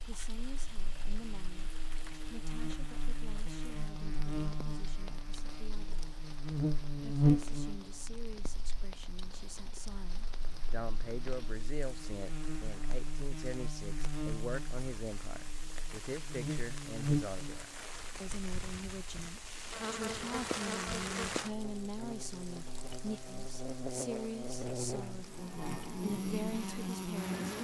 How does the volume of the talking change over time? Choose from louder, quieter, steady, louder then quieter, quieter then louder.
louder.